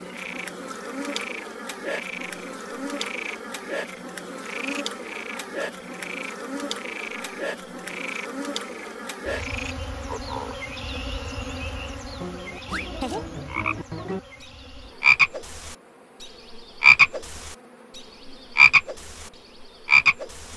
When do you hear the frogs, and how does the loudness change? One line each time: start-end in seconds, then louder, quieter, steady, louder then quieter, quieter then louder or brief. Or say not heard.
0.0-20.5 louder.